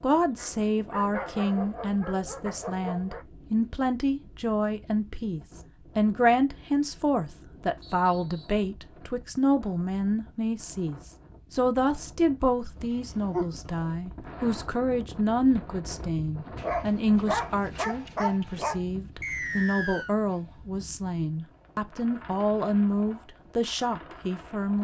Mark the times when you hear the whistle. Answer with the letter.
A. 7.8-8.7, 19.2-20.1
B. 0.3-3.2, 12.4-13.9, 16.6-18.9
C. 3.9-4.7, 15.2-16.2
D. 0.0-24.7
A.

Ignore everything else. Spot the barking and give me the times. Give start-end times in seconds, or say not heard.
0.3-3.2, 12.4-13.9, 16.6-18.9.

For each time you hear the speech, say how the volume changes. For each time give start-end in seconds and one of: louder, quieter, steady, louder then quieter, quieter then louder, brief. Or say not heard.
0.0-24.7 steady.